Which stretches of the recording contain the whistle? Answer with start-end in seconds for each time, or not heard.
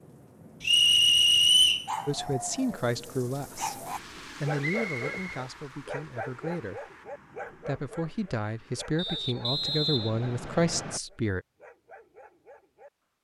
0.6-1.9, 4.6-5.3, 8.9-11.0.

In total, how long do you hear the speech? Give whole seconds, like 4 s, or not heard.
8 s.